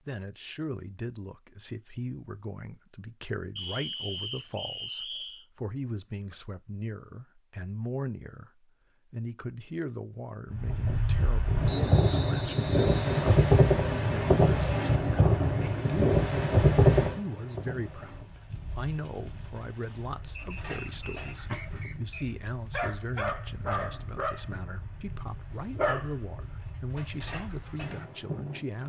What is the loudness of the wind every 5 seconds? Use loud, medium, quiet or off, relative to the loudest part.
off, off, loud, loud, quiet, quiet.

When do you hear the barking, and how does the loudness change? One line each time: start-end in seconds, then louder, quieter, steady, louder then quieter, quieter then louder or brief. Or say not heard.
20.4-24.6 louder
25.2-28.1 brief.